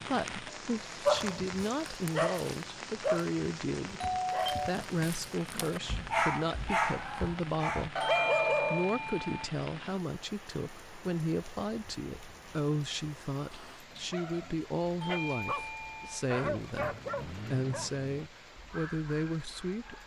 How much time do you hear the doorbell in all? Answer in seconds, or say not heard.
4 s.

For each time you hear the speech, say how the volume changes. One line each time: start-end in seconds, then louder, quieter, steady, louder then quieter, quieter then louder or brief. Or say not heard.
0.1-20.0 steady.